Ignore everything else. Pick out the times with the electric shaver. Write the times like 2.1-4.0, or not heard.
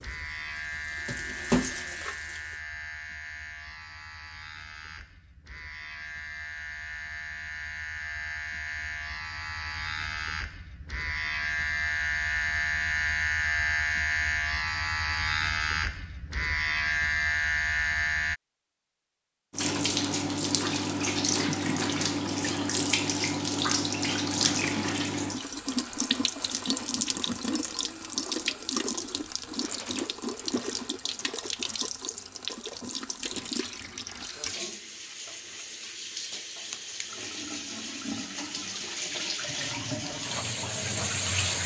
0.0-18.4.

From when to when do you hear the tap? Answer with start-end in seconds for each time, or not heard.
0.0-2.6, 19.5-41.6.